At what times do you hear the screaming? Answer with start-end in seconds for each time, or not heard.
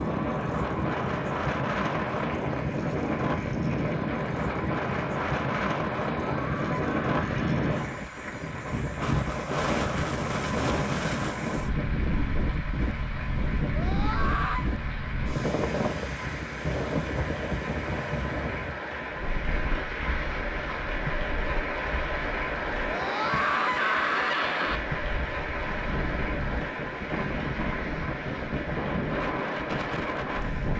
6.2-7.8, 13.7-14.7, 22.9-24.8.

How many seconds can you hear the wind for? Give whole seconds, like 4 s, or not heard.
31 s.